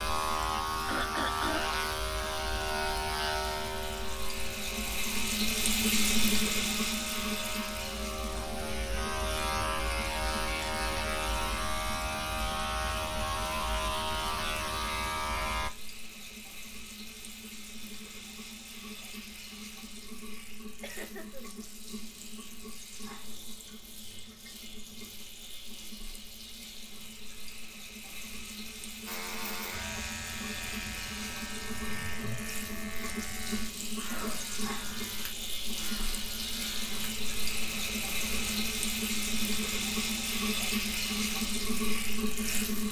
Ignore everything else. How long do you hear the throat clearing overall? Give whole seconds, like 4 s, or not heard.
2 s.